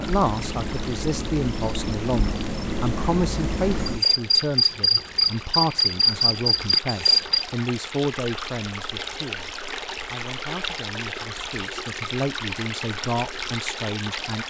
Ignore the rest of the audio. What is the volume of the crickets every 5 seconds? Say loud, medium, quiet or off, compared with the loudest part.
medium, loud, off.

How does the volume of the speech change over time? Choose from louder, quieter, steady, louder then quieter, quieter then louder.
quieter then louder.